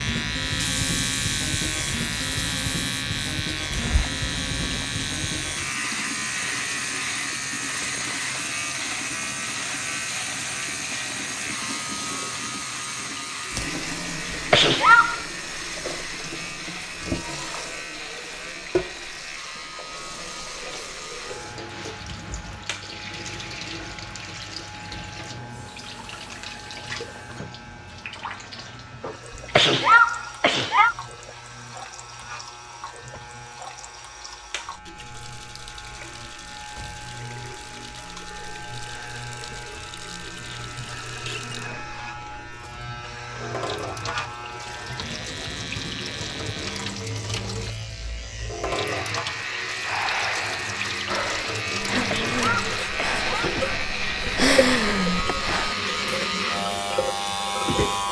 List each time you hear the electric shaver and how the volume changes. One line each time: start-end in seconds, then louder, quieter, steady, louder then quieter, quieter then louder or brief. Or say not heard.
0.0-58.0 quieter then louder.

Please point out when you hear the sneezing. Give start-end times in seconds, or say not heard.
14.3-15.2, 29.5-30.9, 51.9-53.2.